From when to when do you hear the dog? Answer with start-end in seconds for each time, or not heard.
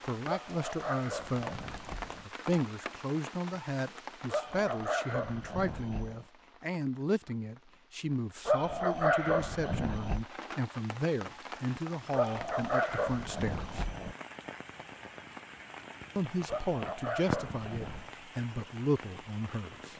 0.2-2.2, 4.2-6.2, 8.4-10.2, 12.1-14.2, 16.4-18.1.